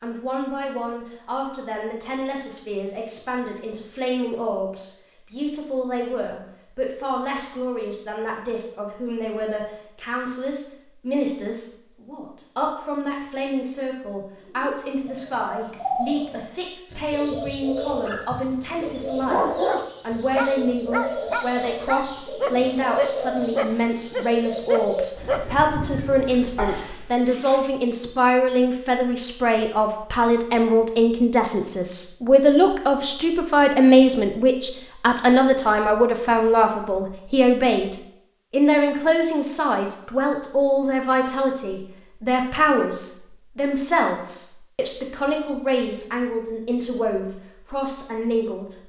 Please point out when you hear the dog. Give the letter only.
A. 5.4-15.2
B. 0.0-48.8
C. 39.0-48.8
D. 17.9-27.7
D.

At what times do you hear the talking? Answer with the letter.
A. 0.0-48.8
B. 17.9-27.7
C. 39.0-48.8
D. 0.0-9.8
A.